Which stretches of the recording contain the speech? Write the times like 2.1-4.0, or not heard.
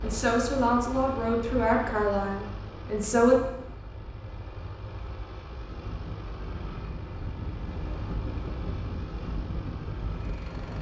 0.0-3.4.